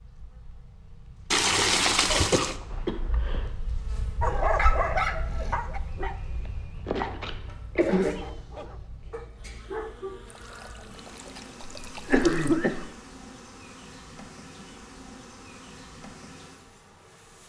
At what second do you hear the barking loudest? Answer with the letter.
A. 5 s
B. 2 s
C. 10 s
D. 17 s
A.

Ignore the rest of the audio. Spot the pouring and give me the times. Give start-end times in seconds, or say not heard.
1.3-2.6, 10.3-12.6.